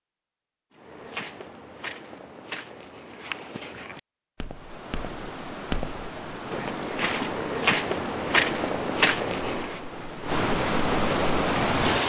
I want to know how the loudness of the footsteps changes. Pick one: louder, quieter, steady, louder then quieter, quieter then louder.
louder.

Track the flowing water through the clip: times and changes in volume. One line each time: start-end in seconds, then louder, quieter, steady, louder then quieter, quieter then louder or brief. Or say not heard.
4.5-12.0 louder.